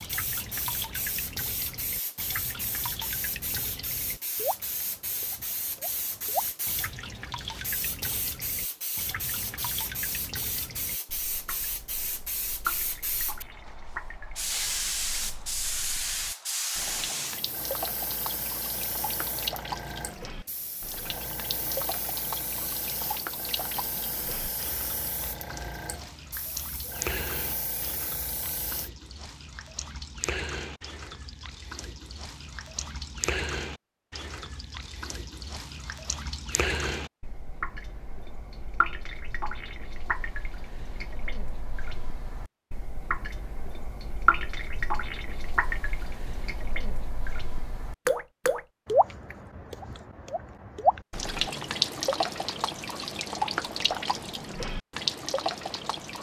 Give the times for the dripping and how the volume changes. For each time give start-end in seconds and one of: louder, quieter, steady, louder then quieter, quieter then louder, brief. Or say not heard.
0.0-56.1 louder.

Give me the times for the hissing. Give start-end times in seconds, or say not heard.
0.0-28.9.